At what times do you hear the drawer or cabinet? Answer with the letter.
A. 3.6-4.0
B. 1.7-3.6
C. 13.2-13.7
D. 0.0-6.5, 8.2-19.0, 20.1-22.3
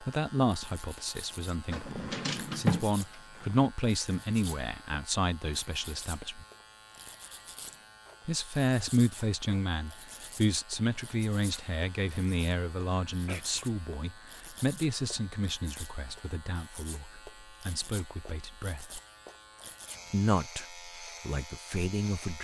B.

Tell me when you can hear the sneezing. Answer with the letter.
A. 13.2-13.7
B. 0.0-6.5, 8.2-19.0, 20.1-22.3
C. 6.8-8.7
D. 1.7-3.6
A.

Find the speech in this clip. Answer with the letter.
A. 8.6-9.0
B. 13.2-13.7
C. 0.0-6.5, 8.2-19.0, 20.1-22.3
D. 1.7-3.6
C.